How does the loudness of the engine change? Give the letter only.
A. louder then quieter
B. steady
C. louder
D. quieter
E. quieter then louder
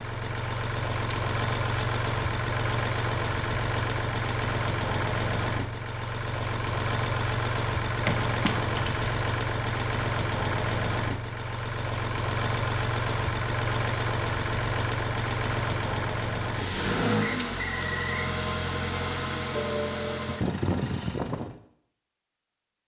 B.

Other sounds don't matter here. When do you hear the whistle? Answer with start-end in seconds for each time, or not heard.
17.2-18.3.